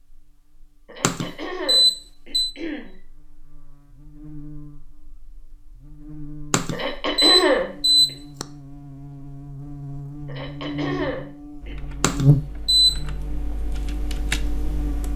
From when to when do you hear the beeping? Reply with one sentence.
The beeping can be heard from 1.0 to 2.5 s, from 6.5 to 8.4 s and from 12.0 to 12.9 s.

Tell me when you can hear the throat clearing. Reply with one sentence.
The throat clearing can be heard from 0.8 to 3.0 s, from 6.7 to 7.7 s and from 10.2 to 11.8 s.